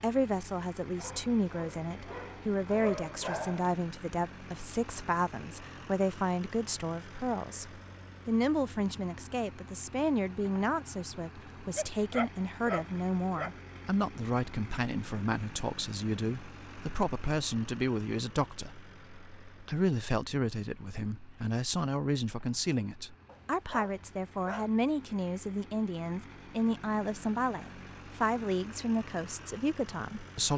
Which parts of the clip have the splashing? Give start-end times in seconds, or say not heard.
not heard.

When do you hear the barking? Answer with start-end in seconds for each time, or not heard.
0.9-3.8, 11.8-13.6, 23.2-24.7.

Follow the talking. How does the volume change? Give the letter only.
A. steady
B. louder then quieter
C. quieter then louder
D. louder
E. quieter
A.